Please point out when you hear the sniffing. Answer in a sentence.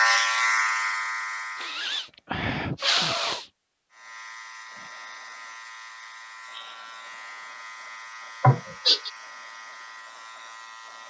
You can hear the sniffing from 1.6 to 3.5 s and from 8.4 to 9.1 s.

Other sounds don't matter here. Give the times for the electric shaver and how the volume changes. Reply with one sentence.
The electric shaver can be heard briefly from 0.0 to 1.9 s; and from 4.0 to 11.0 s, at a steady volume.